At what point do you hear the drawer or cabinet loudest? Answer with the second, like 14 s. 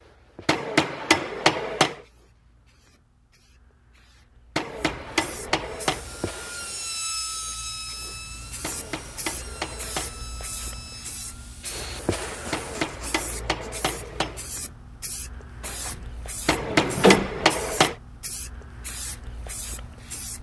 17 s.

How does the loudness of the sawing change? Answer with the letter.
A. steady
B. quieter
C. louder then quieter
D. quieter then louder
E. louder
B.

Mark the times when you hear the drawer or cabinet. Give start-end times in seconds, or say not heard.
15.6-17.6.